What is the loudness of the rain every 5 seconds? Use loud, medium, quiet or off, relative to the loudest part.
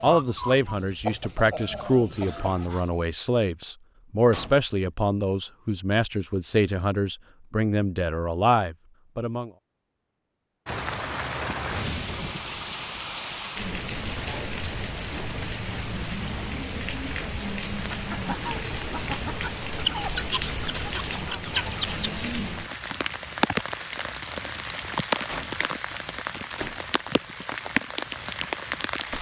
off, off, loud, loud, loud, loud.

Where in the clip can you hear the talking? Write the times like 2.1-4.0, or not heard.
0.0-9.5.